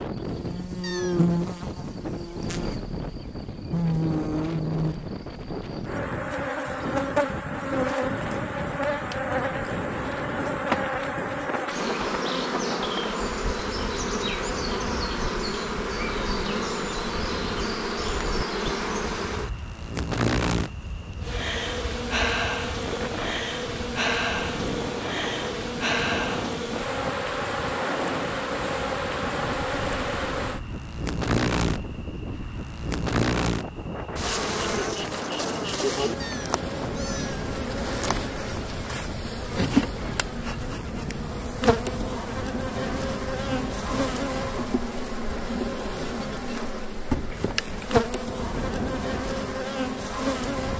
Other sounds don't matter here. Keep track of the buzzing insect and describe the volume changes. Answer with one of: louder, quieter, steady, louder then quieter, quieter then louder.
steady.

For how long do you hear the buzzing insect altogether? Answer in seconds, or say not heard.
51 s.